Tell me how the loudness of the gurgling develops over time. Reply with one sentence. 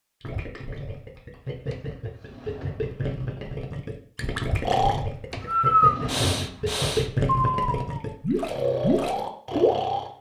The loudness of the gurgling goes up.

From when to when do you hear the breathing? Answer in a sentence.
You can hear the breathing from 4.6 to 10.1 s.